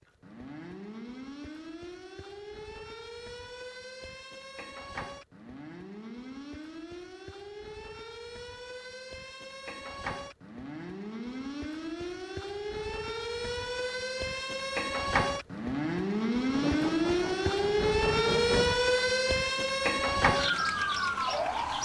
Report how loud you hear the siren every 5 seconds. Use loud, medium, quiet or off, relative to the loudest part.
quiet, quiet, medium, loud, loud.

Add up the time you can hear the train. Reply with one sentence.
The train can be heard for 2 seconds in total.